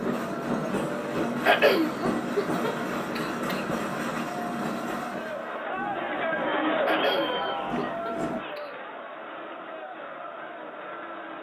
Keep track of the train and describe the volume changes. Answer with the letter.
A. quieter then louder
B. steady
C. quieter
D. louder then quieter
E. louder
C.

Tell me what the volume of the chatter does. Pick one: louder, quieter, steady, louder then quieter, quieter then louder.
louder then quieter.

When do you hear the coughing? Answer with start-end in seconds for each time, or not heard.
1.4-3.6, 6.8-8.7.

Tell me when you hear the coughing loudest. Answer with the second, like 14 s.
2 s.